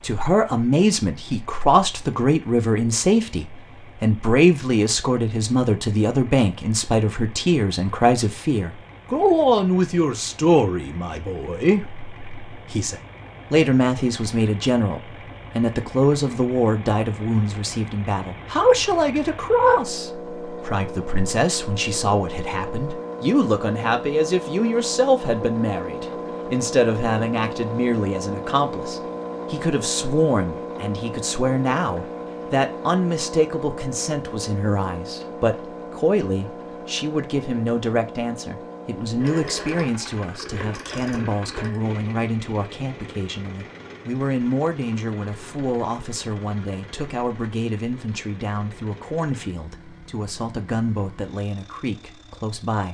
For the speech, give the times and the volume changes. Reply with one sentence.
You can hear the speech from 0.0 to 52.9 s, getting quieter.